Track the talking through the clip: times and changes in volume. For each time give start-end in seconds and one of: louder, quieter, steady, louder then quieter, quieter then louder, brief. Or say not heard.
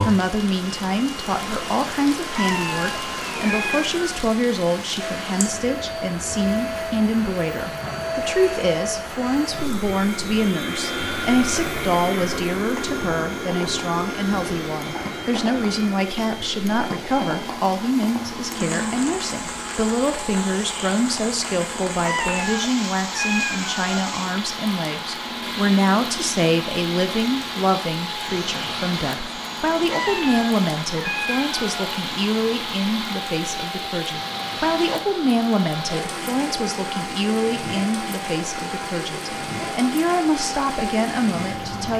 0.0-41.9 steady.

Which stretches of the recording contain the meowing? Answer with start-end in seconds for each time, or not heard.
2.4-4.2, 22.0-23.8, 29.9-31.9.